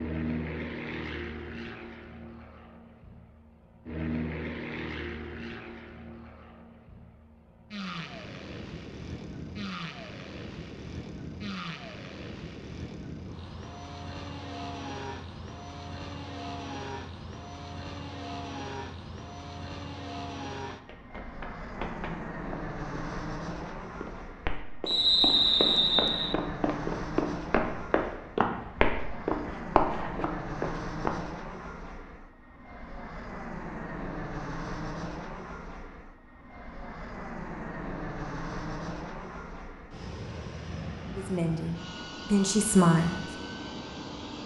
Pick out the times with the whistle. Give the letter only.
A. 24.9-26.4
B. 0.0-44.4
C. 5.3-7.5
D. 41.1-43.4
A.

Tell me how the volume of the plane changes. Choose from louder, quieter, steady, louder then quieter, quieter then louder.
steady.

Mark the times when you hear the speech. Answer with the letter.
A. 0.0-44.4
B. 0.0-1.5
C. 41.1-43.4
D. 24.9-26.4
C.